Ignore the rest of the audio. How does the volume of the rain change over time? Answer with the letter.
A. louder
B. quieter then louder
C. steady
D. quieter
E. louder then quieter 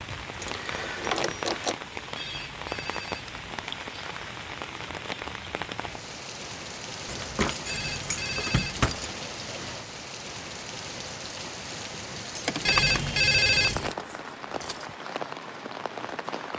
C.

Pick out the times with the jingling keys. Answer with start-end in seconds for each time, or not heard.
0.3-1.8, 7.0-9.1, 12.3-14.9.